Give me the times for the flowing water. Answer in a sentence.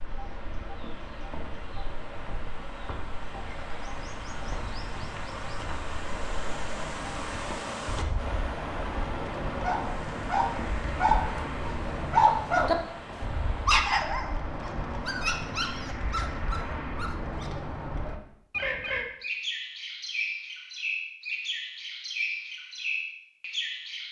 You can hear the flowing water from 0.0 to 13.8 s.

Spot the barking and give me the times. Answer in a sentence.
The barking can be heard from 9.6 to 17.5 s.